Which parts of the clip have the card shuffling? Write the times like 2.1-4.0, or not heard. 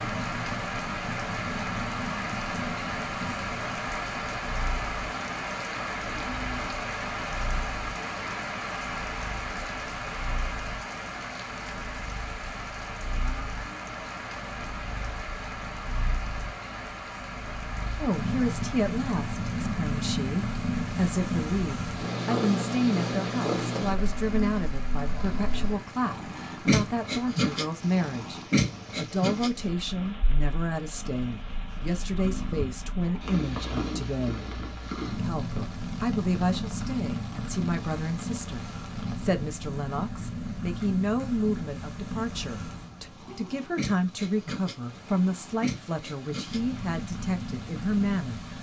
not heard.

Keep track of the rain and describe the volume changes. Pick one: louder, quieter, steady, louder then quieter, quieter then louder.
quieter.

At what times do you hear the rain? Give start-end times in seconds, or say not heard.
0.0-48.5.